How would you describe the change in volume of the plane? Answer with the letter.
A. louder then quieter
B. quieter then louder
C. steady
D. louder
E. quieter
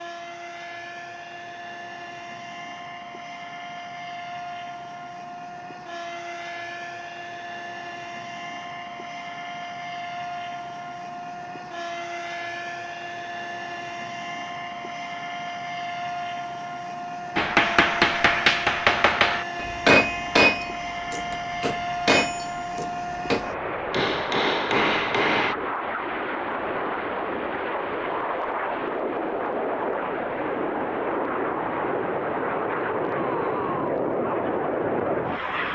D.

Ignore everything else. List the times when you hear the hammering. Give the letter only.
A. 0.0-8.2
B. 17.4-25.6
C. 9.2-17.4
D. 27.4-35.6
B.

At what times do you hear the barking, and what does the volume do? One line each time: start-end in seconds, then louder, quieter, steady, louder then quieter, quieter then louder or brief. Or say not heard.
not heard.